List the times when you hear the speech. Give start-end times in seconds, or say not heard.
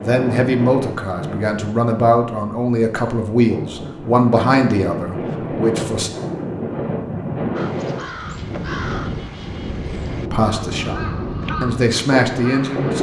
0.0-6.1, 10.3-12.9.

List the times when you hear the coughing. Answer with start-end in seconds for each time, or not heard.
not heard.